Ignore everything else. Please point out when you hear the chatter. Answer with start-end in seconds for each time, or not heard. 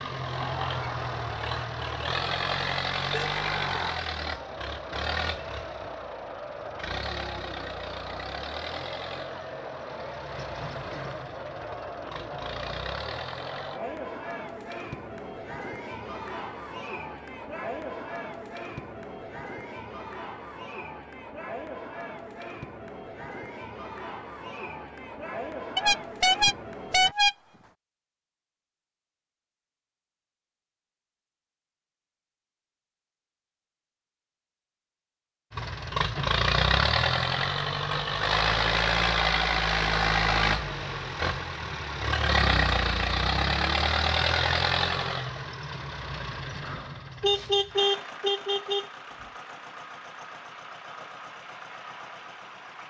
0.0-27.1.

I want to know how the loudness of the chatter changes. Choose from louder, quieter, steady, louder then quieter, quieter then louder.
steady.